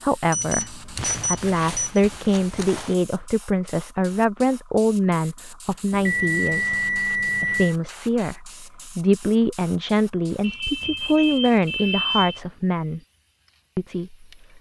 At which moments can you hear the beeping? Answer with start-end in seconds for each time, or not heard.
0.3-2.0, 5.9-7.8, 10.4-12.4.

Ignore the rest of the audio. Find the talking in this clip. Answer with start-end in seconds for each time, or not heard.
0.0-13.0, 13.8-14.2.